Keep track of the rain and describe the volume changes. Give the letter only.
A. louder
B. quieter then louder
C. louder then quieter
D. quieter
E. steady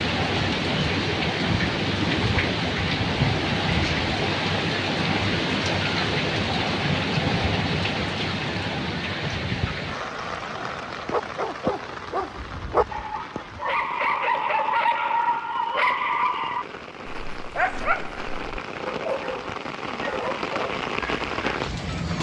B.